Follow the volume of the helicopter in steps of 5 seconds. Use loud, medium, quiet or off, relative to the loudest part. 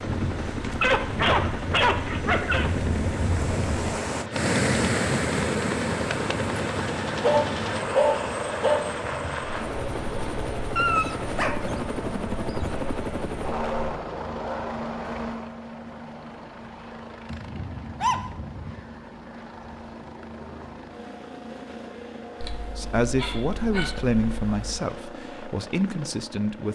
loud, loud, loud, medium, medium, medium.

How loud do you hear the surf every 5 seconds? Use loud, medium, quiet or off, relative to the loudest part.
loud, loud, medium, off, off, off.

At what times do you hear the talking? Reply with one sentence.
You can hear the talking from 22.8 to 26.6 s.